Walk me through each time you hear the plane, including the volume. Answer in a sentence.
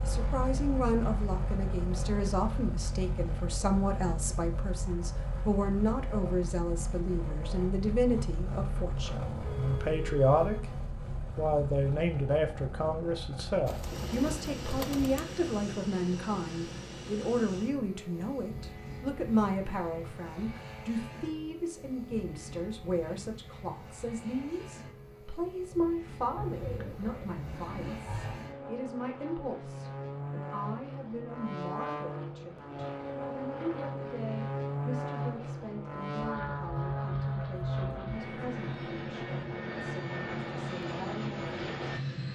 The plane can be heard from 0.0 to 42.3 s, getting quieter then louder.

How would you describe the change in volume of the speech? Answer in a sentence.
The volume of the speech goes down.